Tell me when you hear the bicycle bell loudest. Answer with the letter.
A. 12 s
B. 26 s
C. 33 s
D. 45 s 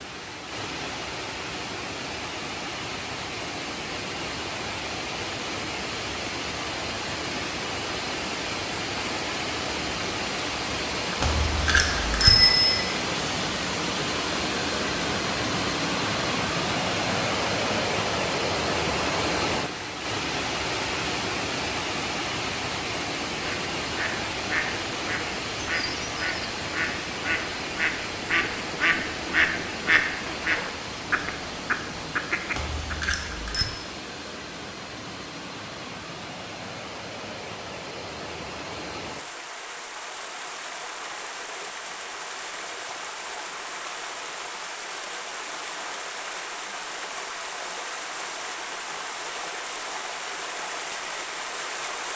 A.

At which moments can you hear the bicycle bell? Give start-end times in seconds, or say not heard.
11.2-12.8, 32.5-33.6.